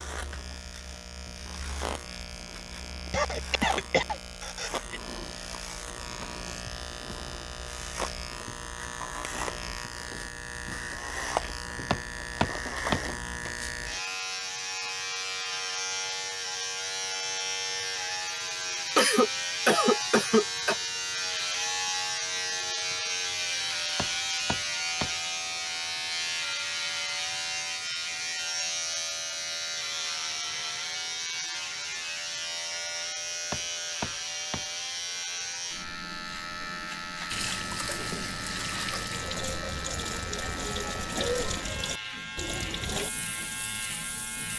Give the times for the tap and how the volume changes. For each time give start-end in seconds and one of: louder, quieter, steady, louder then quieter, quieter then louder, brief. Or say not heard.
37.3-44.5 steady.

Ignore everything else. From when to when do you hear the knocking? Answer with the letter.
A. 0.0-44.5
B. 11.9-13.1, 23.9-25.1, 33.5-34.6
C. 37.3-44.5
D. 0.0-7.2
B.